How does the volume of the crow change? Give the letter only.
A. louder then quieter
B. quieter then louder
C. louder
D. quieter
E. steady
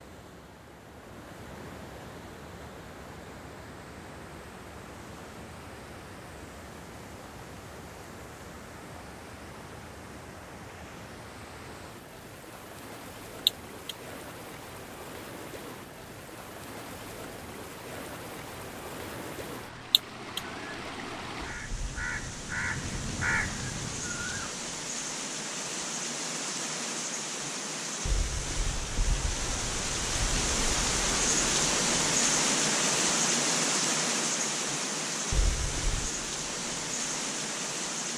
C.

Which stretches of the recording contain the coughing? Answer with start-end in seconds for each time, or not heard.
13.4-13.9, 19.9-20.4.